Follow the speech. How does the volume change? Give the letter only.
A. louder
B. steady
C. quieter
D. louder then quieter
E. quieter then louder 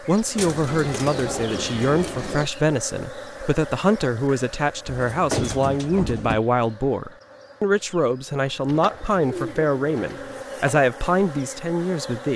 B.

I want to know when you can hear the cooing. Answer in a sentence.
You can hear the cooing from 0.3 to 2.5 s, from 4.8 to 6.4 s and from 8.7 to 10.4 s.